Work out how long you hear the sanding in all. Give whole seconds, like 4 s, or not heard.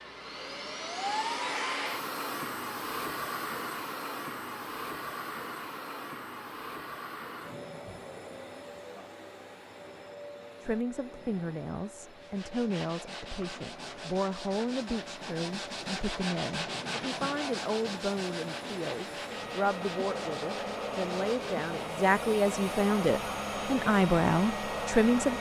10 s.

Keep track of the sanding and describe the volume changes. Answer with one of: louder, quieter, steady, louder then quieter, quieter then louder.
louder then quieter.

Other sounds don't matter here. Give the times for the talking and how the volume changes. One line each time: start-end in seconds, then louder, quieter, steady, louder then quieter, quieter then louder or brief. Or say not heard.
10.6-25.3 louder.